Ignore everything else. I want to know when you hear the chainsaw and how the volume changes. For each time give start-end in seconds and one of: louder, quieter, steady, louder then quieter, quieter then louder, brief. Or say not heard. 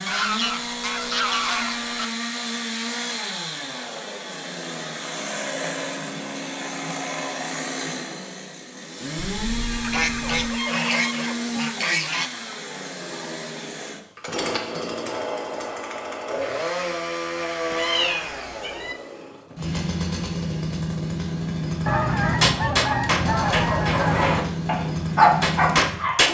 0.0-26.2 steady.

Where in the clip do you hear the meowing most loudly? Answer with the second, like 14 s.
18 s.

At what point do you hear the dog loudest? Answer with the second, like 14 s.
25 s.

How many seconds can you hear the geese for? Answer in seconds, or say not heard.
7 s.